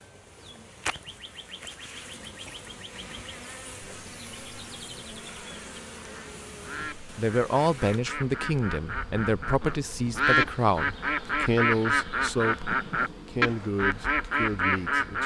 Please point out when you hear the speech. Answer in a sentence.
You can hear the speech from 6.8 to 15.2 s.